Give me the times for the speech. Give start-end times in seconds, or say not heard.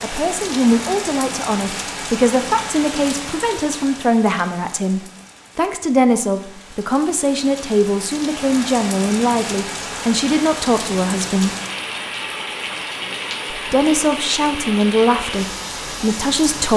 0.0-11.6, 13.5-16.7.